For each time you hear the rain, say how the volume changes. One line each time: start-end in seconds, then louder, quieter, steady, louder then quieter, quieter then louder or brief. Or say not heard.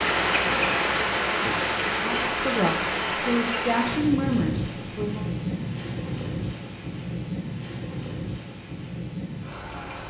0.0-10.0 quieter.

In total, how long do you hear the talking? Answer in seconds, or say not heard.
3 s.